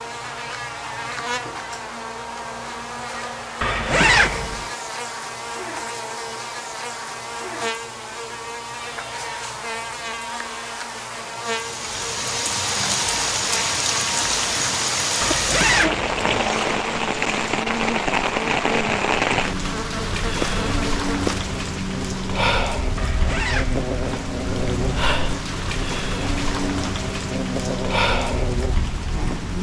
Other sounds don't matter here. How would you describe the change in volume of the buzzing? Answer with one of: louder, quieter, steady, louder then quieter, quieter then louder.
steady.